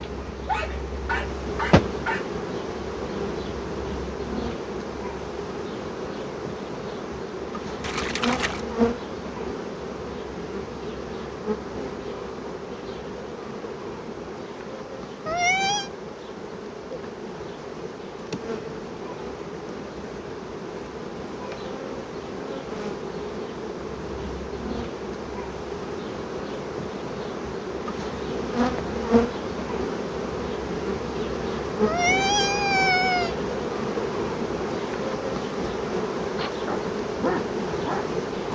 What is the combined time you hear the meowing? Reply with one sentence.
You can hear the meowing for 2 seconds altogether.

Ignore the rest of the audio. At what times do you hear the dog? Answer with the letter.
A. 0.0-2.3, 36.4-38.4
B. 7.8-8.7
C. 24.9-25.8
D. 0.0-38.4
A.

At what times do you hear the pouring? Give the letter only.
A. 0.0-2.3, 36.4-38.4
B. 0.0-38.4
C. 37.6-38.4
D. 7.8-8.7
D.